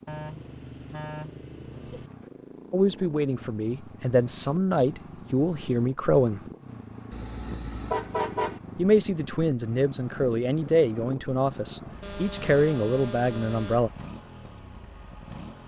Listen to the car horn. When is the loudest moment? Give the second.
8 s.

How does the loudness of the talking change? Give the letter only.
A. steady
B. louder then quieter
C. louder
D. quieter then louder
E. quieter
A.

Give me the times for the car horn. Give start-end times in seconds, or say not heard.
0.1-2.1, 7.1-8.6, 12.0-13.9.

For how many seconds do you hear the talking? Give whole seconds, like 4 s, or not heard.
9 s.